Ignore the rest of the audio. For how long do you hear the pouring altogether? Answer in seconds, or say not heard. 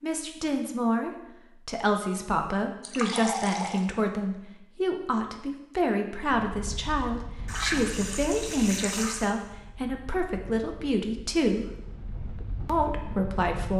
3 s.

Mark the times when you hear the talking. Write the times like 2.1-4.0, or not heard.
0.0-11.7, 12.7-13.7.